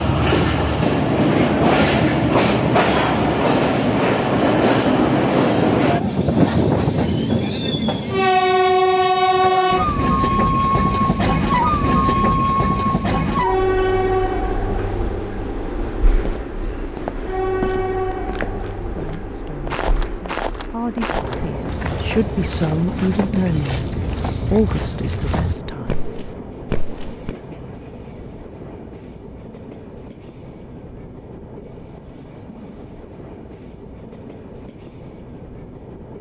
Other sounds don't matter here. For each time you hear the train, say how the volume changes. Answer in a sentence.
The train can be heard from 0.0 to 36.1 s, getting quieter.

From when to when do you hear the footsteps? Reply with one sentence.
The footsteps can be heard from 16.1 to 27.4 s.